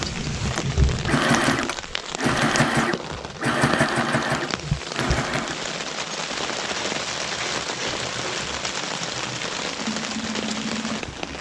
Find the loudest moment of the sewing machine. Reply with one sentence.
The loudest moment of the sewing machine is at 4 seconds.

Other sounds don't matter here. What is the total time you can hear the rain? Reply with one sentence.
The rain can be heard for 11 seconds in total.